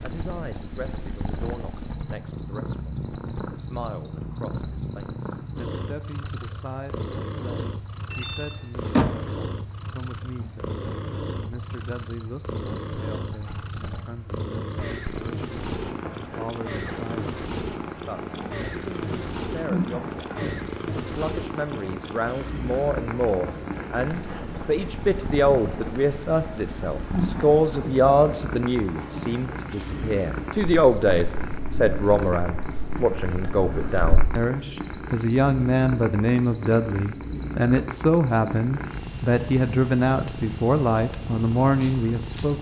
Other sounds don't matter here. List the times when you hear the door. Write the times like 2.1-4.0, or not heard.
8.1-9.4.